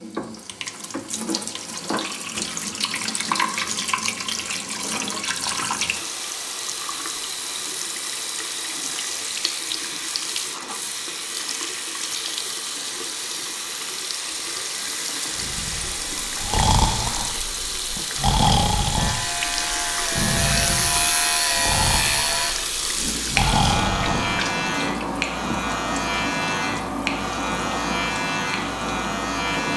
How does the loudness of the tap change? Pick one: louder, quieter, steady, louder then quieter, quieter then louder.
steady.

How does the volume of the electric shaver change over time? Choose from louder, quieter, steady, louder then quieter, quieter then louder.
steady.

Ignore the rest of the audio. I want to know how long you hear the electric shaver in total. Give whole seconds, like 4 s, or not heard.
11 s.